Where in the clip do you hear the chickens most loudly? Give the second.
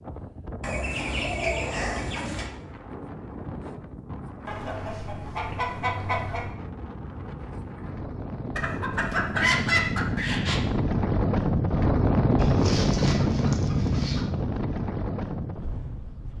10 s.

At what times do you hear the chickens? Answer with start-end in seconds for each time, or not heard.
0.6-2.5, 4.5-6.5, 8.6-10.6, 12.3-14.2.